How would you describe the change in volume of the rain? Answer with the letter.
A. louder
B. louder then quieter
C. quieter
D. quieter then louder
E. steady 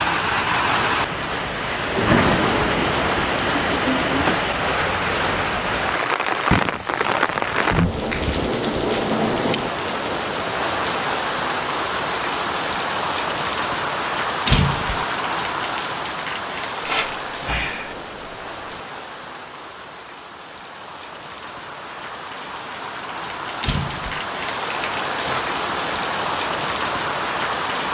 D.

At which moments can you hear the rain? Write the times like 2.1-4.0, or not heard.
0.0-27.9.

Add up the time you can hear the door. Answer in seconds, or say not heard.
4 s.